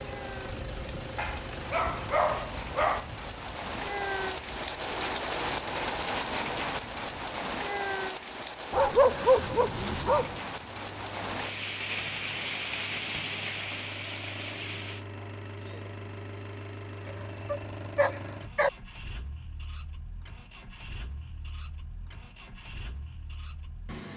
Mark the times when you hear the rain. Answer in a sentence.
The rain can be heard from 0.0 to 15.1 s.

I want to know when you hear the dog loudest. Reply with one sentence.
The loudest moment of the dog is at 9 seconds.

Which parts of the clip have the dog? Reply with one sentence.
The dog can be heard from 1.1 to 3.0 s, from 8.7 to 10.3 s and from 17.1 to 18.7 s.